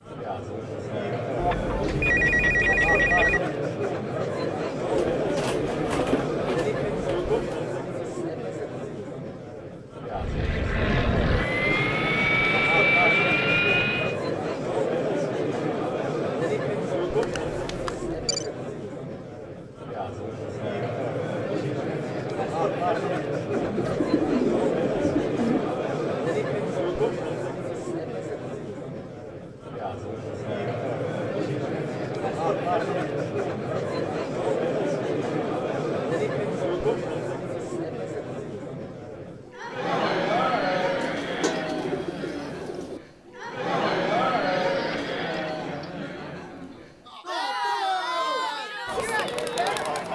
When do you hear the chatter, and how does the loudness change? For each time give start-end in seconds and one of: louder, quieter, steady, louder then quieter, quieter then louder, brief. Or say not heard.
0.0-50.1 steady.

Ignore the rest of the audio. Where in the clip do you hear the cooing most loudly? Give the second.
24 s.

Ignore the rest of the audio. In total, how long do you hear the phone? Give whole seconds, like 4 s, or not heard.
5 s.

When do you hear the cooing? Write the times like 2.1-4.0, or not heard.
4.9-7.6, 23.6-25.7, 41.0-43.0.